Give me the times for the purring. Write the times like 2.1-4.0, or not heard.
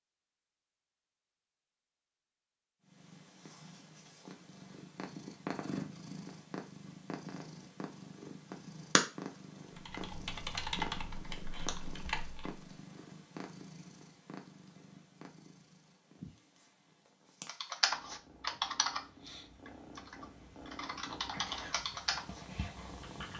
2.9-23.3.